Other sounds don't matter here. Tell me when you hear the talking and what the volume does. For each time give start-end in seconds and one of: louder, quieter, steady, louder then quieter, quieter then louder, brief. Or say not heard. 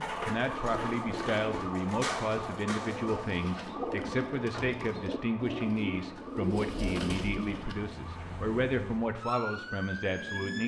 0.0-10.6 steady.